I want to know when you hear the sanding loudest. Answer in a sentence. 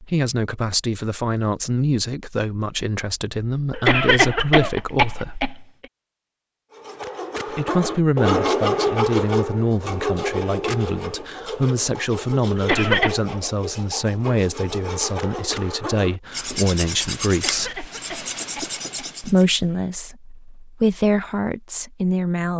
The volume of the sanding peaks at 8 seconds.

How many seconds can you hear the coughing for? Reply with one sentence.
You can hear the coughing for 5 seconds altogether.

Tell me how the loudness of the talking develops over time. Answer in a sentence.
The loudness of the talking stays about the same.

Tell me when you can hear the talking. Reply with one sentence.
The talking can be heard from 0.0 to 5.4 s, from 7.5 to 17.9 s and from 19.2 to 22.5 s.